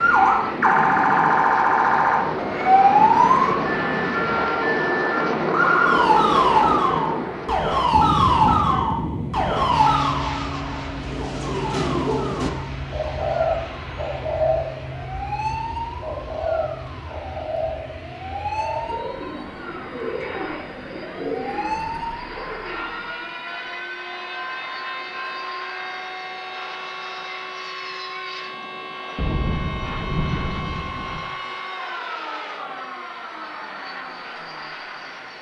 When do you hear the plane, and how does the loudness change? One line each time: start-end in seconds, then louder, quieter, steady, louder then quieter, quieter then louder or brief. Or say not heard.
0.0-35.3 quieter.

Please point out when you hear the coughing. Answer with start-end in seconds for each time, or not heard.
not heard.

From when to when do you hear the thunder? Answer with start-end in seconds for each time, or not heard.
29.1-31.2.